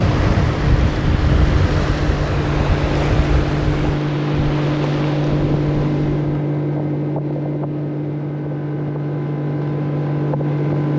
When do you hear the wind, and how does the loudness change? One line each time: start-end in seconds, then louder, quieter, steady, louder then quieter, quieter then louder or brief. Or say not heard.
0.0-6.4 quieter.